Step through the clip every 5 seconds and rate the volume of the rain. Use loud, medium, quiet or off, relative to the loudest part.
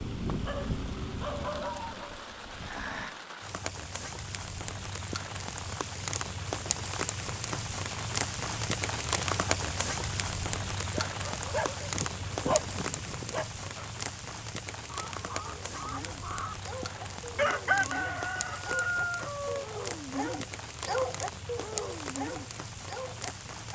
medium, loud, loud, medium, medium.